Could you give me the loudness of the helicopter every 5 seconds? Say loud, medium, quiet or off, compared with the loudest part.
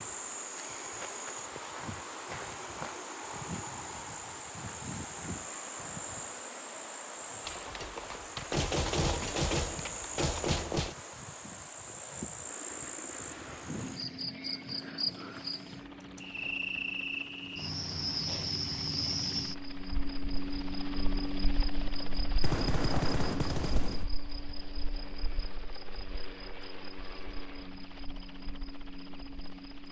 off, off, medium, medium, loud, medium.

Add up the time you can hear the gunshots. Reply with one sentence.
You can hear the gunshots for 5 seconds altogether.